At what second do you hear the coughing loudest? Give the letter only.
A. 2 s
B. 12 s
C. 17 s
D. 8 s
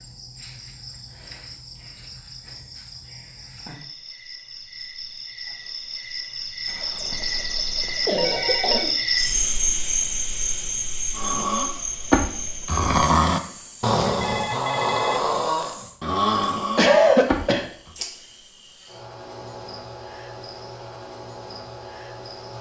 C.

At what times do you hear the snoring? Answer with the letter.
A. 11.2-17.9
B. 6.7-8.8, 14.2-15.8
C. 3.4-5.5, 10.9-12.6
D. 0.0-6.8
A.